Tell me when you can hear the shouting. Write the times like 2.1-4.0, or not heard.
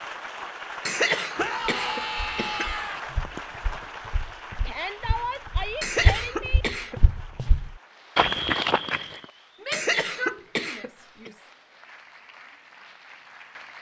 1.4-3.0, 4.7-6.7, 9.6-11.3.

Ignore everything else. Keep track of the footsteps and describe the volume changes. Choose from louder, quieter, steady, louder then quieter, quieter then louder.
louder.